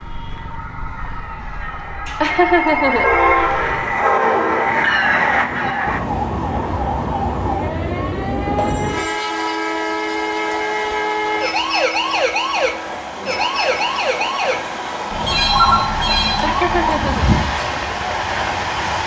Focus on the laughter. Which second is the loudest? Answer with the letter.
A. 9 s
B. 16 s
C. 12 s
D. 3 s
D.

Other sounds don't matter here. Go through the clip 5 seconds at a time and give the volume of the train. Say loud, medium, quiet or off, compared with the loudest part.
loud, loud, medium, loud.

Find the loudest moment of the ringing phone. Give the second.
16 s.